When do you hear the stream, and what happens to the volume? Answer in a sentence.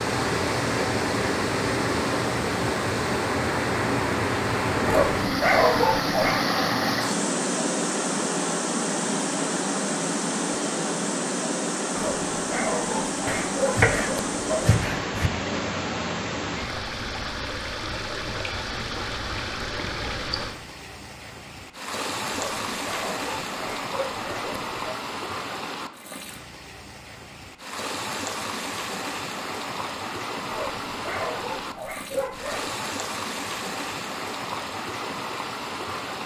You can hear the stream from 0.0 to 36.2 s, getting quieter.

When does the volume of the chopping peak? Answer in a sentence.
The volume of the chopping peaks at 14 seconds.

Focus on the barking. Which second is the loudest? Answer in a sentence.
The volume of the barking peaks at 6 seconds.